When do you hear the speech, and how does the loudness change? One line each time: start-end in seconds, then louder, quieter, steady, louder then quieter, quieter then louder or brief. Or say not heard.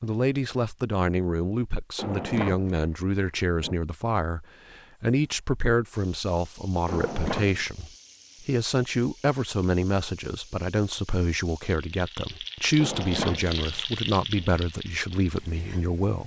0.0-16.2 steady.